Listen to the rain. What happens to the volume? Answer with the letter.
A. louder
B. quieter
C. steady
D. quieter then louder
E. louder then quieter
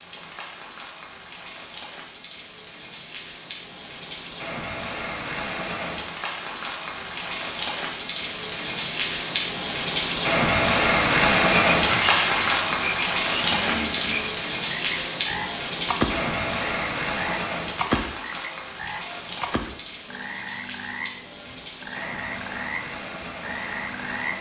E.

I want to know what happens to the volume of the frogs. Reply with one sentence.
The volume of the frogs goes down.